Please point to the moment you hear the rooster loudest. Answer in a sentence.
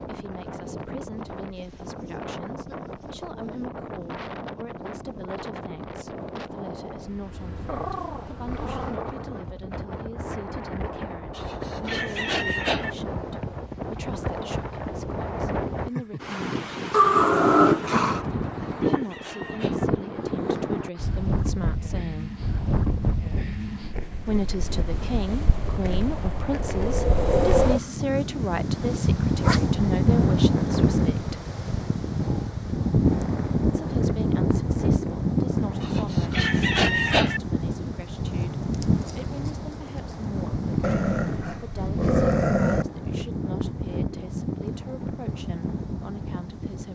The loudest moment of the rooster is at 37 seconds.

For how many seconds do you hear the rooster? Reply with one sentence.
The rooster can be heard for 5 seconds in total.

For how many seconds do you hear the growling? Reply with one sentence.
The growling can be heard for 5 seconds in total.